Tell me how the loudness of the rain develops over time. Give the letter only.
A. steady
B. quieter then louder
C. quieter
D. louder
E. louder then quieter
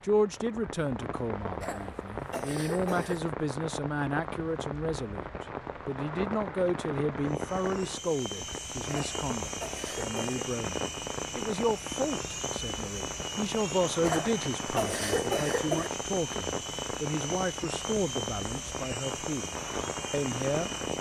A.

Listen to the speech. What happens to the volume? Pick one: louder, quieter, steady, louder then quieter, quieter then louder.
steady.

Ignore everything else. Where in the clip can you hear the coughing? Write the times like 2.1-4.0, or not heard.
1.6-3.3, 8.8-10.4, 14.0-15.9.